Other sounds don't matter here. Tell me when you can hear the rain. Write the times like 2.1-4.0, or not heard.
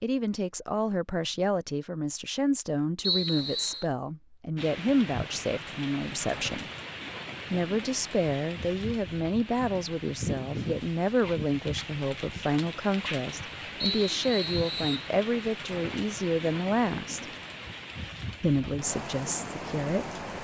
4.5-20.3.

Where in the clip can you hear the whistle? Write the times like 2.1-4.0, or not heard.
3.0-3.9, 13.8-15.1.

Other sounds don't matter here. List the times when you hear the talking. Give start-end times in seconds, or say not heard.
0.0-6.7, 7.5-17.2, 18.4-20.3.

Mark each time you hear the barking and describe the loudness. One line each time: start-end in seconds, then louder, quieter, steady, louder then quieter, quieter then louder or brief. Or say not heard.
not heard.